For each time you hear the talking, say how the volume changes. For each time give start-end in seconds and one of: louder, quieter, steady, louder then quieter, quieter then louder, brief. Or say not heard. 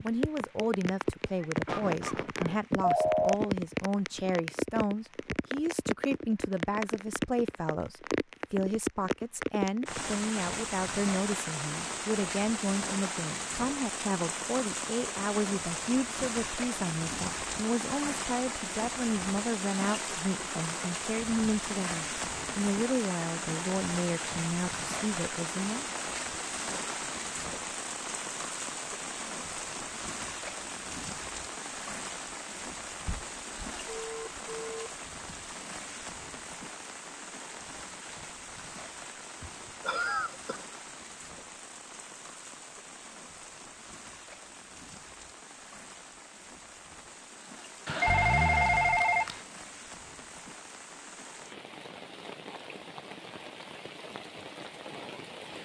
0.0-25.9 steady.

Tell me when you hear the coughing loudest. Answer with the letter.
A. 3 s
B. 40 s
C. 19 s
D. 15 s
B.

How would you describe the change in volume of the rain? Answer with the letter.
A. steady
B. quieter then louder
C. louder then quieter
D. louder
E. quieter
E.